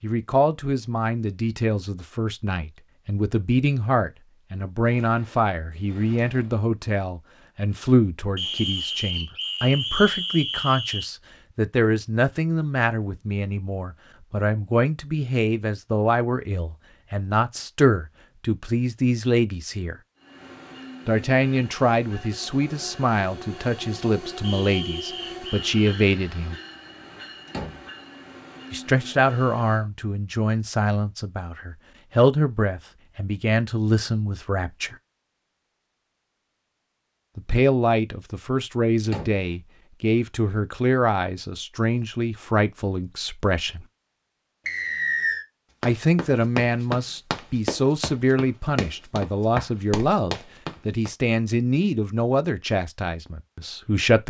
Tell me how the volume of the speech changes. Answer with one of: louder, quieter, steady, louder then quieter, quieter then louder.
steady.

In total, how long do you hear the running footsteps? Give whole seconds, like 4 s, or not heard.
5 s.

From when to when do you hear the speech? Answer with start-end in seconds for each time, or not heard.
0.0-19.9, 21.1-26.6, 28.7-35.0, 37.4-43.9, 45.8-54.2.